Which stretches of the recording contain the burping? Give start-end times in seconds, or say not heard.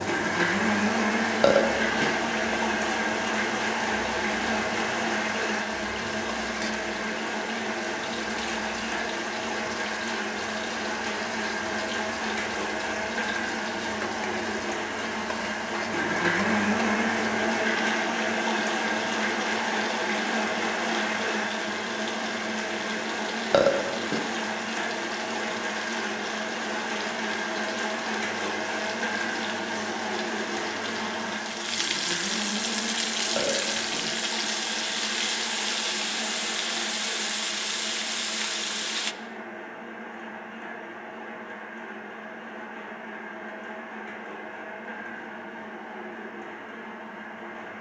1.4-2.1, 23.5-24.2, 33.3-34.0.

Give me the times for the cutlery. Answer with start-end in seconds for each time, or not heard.
not heard.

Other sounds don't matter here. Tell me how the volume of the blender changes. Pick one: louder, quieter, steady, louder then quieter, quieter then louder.
quieter.